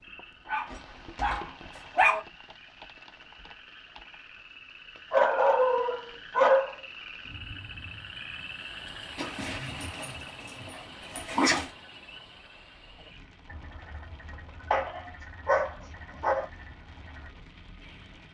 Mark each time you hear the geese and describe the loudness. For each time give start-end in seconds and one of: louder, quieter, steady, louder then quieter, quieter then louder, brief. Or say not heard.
not heard.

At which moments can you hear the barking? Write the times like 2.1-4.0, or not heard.
0.5-2.2, 5.1-6.8, 9.2-11.7, 14.7-16.4.